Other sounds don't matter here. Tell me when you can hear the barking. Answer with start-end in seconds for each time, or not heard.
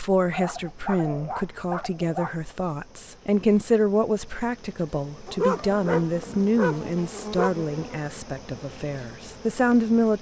0.3-2.4, 5.2-7.5.